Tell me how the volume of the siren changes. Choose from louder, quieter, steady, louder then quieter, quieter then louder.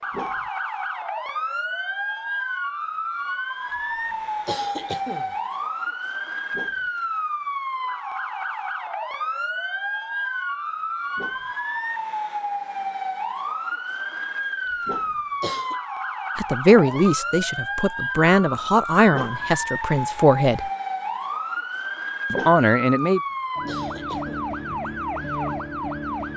steady.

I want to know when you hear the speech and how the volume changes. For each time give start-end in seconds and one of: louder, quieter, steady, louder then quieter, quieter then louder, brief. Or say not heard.
16.4-20.7 quieter then louder
22.3-23.2 brief.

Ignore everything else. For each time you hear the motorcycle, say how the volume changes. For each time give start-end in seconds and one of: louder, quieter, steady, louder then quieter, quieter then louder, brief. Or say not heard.
not heard.